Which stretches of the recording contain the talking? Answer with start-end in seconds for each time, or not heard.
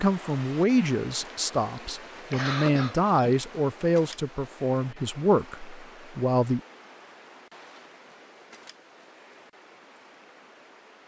0.0-6.6.